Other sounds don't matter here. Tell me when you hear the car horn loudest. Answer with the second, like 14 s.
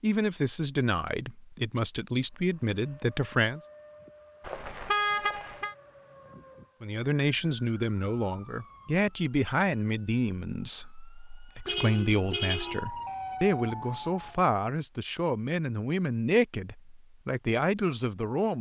5 s.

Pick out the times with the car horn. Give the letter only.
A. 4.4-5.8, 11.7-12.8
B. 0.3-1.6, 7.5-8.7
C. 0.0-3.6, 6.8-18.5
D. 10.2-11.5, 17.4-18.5
A.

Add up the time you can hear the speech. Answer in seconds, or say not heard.
15 s.